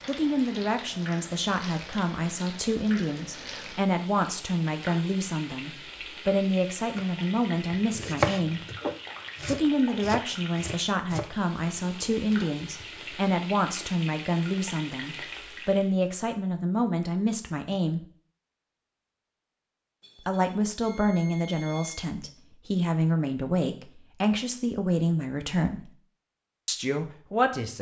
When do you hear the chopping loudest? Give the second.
8 s.